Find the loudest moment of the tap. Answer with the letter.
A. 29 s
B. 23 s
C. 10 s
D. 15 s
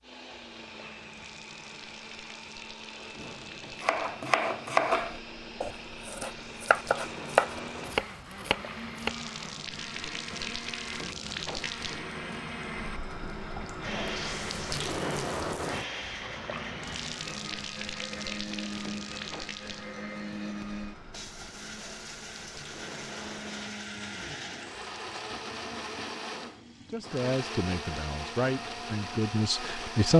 D.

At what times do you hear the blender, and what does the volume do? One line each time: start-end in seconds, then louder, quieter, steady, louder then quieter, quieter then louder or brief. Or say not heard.
0.0-30.1 louder.